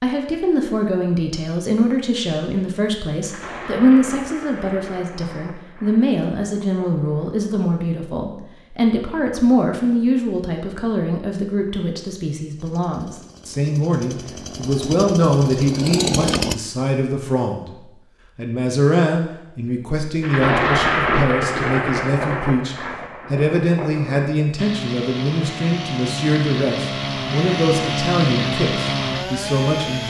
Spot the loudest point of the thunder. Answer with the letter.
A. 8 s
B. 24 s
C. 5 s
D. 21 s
D.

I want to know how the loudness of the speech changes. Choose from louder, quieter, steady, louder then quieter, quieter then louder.
steady.